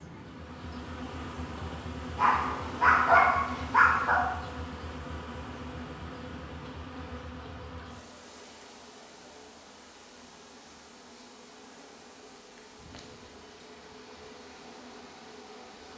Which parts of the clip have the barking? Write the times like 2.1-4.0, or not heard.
2.1-4.2.